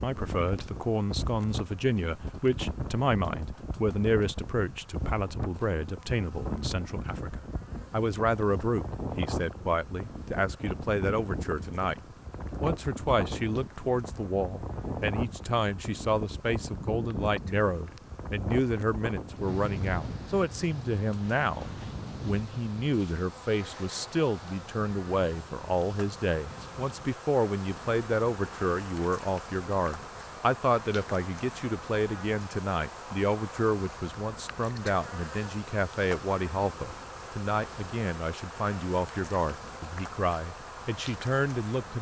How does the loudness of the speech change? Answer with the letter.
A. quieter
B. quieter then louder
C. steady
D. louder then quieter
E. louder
C.